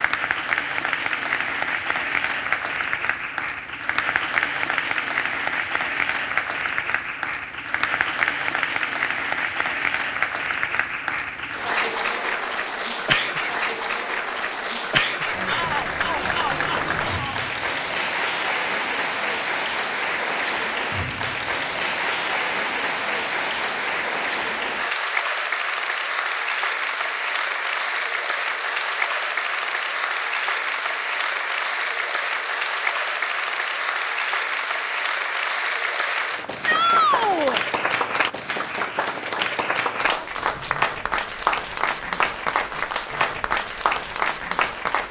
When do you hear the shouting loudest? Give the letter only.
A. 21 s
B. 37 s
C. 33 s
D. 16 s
B.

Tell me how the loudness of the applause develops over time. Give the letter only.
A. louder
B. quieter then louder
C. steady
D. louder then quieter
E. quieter
C.